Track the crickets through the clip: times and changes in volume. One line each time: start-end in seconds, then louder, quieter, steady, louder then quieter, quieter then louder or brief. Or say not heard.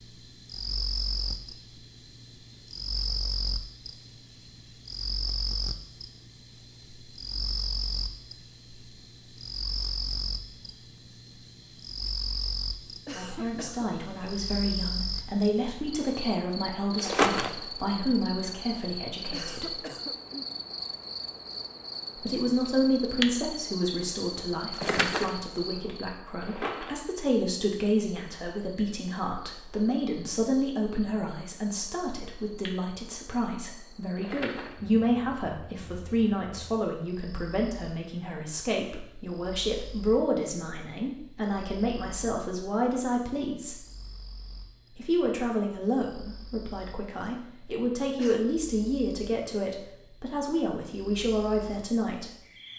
0.0-52.7 quieter.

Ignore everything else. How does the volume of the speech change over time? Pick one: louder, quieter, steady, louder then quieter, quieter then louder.
steady.